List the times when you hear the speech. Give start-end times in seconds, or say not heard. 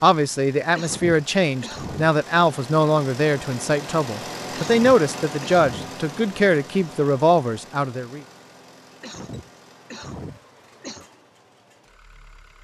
0.0-8.2.